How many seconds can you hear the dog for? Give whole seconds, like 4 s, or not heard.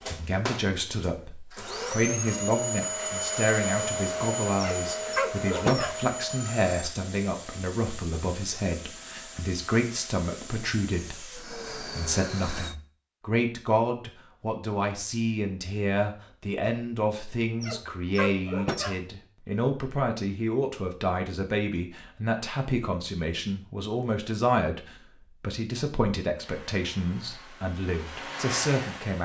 3 s.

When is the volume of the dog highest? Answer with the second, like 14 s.
6 s.